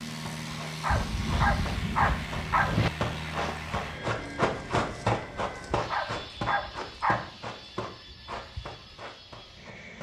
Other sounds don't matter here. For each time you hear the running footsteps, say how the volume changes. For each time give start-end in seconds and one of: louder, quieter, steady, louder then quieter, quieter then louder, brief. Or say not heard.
0.1-9.9 louder then quieter.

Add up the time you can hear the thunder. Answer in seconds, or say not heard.
2 s.